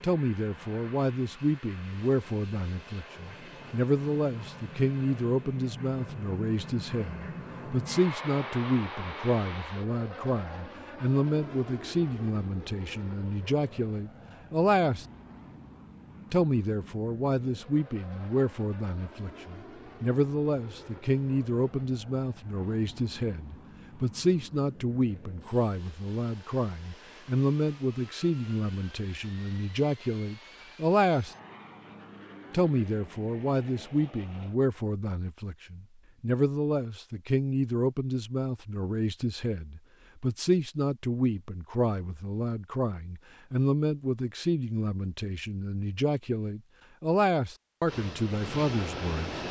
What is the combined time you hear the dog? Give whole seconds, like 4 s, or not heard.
not heard.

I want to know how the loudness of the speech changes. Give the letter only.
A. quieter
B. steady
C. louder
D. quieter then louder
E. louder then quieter
B.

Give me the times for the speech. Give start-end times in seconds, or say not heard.
0.0-15.1, 16.3-31.4, 32.5-49.4.